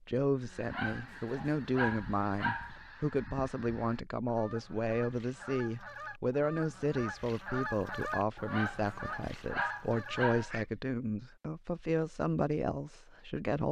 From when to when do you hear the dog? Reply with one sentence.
You can hear the dog from 0.7 to 2.8 s and from 8.5 to 10.5 s.